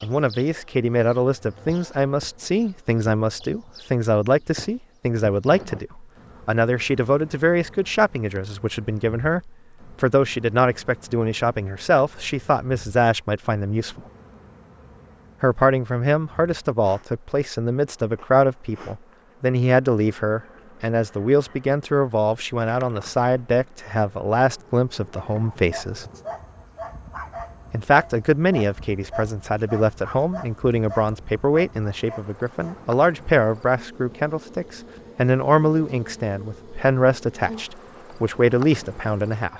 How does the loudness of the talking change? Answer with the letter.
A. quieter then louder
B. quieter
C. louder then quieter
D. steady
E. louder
D.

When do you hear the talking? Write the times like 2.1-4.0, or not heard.
0.0-14.0, 15.4-26.1, 27.7-39.5.